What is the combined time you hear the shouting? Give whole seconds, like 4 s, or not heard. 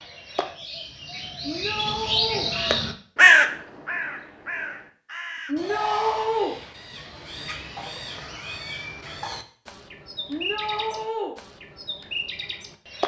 3 s.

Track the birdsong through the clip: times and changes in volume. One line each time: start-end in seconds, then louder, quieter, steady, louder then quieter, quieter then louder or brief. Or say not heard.
0.0-13.0 louder then quieter.